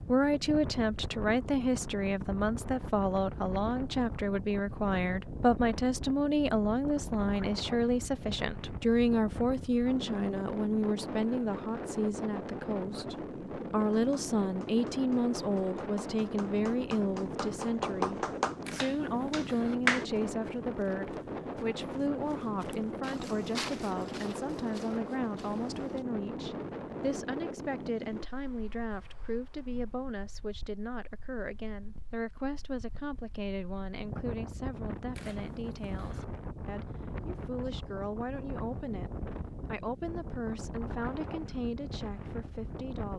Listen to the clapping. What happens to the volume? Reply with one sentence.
The volume of the clapping goes up, then down.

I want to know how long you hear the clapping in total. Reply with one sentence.
The clapping can be heard for 6 seconds in total.